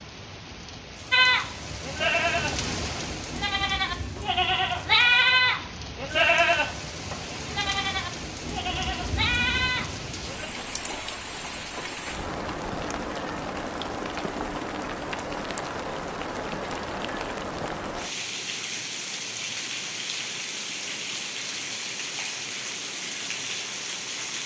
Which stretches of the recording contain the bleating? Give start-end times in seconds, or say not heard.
1.1-10.5.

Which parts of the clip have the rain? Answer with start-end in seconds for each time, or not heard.
0.0-24.4.